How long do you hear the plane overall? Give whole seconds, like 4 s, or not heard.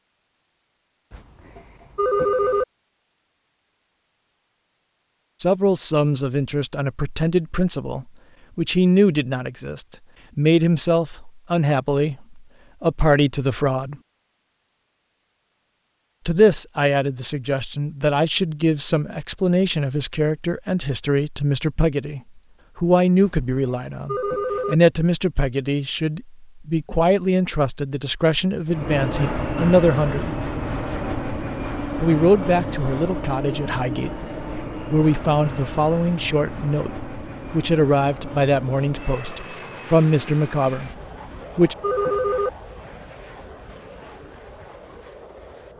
17 s.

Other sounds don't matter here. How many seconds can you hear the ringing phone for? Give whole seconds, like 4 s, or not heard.
5 s.